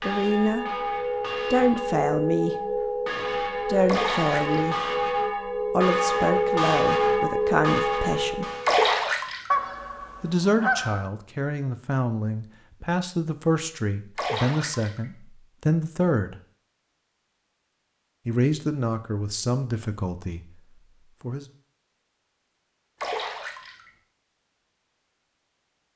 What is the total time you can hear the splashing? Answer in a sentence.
You can hear the splashing for 4 seconds altogether.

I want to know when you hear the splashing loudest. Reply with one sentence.
The volume of the splashing peaks at 9 seconds.